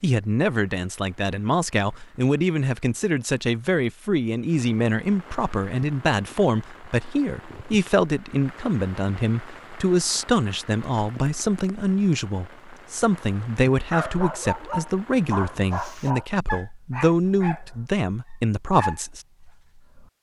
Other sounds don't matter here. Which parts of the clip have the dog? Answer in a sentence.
The dog can be heard from 13.9 to 20.1 s.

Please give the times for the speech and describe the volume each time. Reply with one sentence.
The speech can be heard from 0.0 to 19.2 s, at a steady volume.